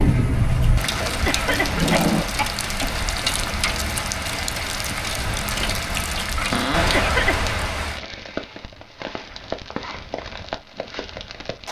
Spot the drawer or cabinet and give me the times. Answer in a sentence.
The drawer or cabinet can be heard from 1.0 to 2.2 s and from 6.5 to 7.0 s.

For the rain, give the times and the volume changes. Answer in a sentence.
You can hear the rain from 0.0 to 11.6 s, getting quieter.